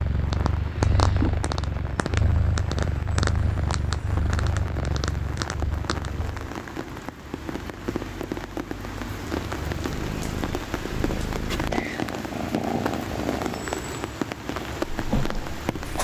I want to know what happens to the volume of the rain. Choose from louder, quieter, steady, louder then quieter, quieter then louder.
louder.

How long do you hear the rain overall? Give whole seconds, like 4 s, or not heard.
16 s.